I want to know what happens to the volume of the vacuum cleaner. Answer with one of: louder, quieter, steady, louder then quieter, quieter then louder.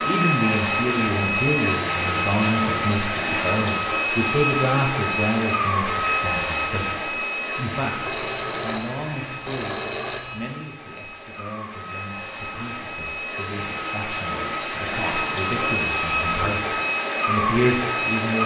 quieter then louder.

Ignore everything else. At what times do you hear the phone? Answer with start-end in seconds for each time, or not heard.
8.0-10.6.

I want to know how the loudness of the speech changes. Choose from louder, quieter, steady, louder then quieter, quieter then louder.
quieter then louder.